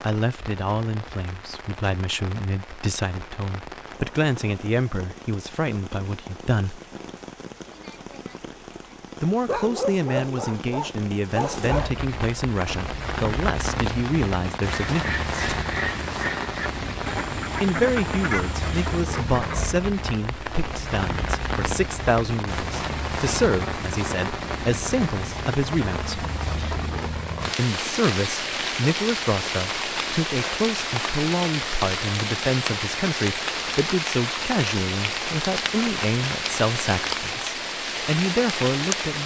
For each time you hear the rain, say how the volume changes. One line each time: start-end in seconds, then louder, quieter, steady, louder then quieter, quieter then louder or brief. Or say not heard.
0.0-39.2 louder.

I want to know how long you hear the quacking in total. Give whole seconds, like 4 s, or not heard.
5 s.